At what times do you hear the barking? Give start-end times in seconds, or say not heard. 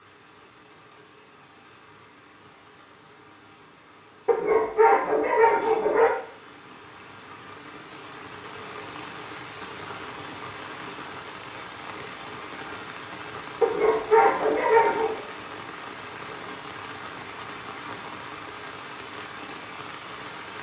4.2-6.2, 13.6-15.2.